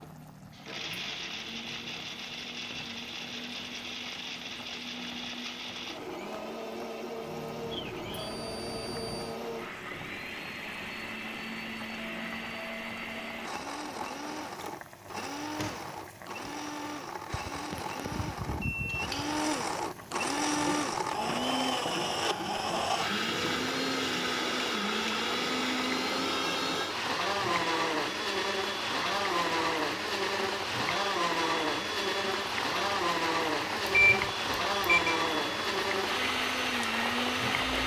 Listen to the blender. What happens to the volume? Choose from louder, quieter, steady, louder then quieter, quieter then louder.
louder.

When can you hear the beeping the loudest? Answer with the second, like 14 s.
34 s.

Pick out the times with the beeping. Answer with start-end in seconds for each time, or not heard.
7.7-9.4, 18.1-19.4, 33.9-35.2.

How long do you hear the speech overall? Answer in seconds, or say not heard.
not heard.